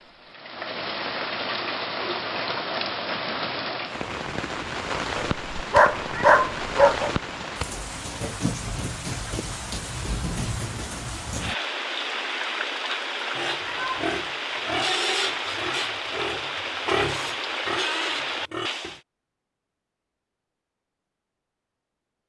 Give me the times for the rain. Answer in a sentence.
You can hear the rain from 0.0 to 19.0 s.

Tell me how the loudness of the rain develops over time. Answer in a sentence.
The volume of the rain stays about the same.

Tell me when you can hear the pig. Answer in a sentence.
You can hear the pig from 13.3 to 19.0 s.